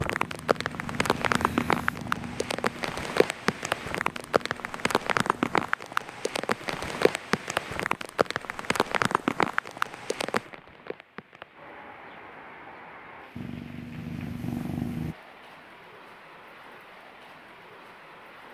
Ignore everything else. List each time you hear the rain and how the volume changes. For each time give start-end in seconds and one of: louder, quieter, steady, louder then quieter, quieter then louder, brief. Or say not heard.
0.0-18.4 quieter.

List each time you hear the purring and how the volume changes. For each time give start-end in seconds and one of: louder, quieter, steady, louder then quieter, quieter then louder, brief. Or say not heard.
0.1-5.7 quieter
13.3-15.2 brief.